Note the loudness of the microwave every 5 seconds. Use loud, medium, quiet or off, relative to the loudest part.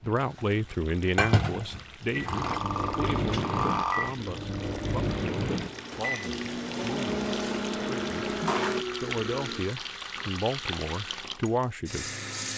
loud, loud, off.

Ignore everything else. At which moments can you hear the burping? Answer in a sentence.
You can hear the burping from 2.2 to 4.1 s and from 7.2 to 9.7 s.